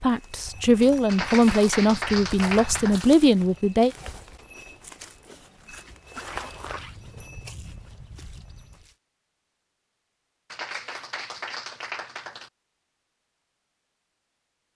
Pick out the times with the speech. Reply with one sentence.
The speech can be heard from 0.0 to 3.9 s.